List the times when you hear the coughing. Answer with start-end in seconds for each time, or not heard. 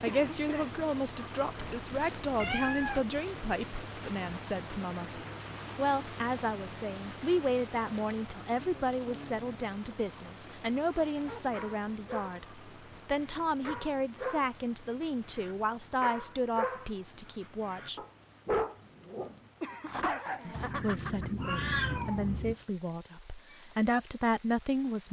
0.1-0.8, 19.6-20.4.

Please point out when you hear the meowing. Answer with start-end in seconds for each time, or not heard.
1.6-3.0, 20.6-22.6.